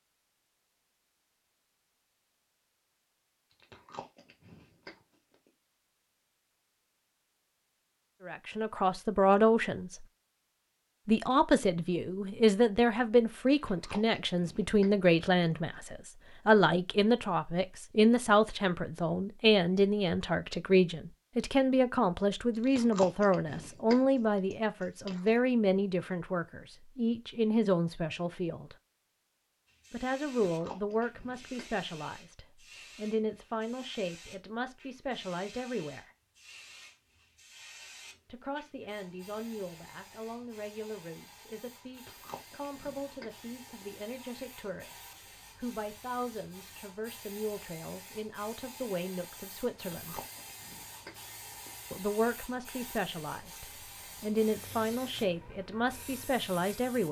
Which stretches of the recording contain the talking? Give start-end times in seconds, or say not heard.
8.2-10.1, 11.1-28.8, 29.9-36.1, 38.2-50.2, 51.9-57.0.